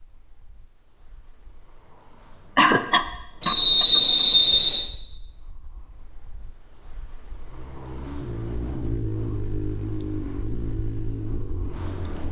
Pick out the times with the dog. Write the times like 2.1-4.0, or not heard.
not heard.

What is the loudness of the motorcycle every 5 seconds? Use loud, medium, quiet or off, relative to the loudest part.
off, loud, loud.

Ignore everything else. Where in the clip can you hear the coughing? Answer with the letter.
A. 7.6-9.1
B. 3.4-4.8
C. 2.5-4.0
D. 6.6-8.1
C.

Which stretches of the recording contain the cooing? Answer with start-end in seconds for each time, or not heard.
not heard.